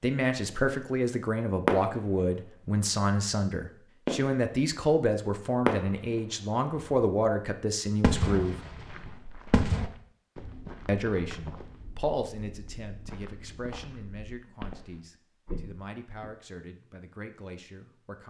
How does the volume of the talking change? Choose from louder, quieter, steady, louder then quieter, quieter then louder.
quieter.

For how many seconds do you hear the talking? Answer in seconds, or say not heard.
16 s.